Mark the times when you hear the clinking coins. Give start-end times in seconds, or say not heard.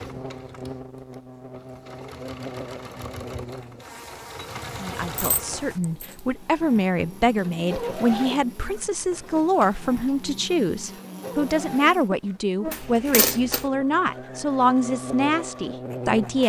5.2-6.2, 12.7-13.7.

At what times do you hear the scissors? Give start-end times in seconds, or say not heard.
not heard.